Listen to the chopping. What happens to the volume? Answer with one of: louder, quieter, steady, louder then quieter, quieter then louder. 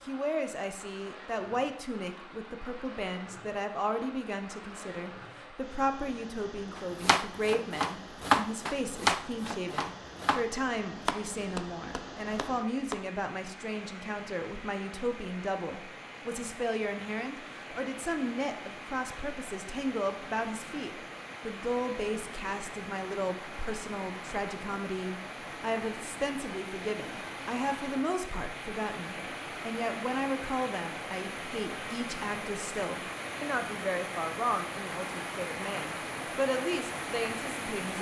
louder then quieter.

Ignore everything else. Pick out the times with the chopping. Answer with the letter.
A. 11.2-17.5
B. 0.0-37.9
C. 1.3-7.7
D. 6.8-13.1
D.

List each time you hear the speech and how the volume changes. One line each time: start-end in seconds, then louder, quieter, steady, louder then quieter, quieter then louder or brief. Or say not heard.
0.0-37.9 steady.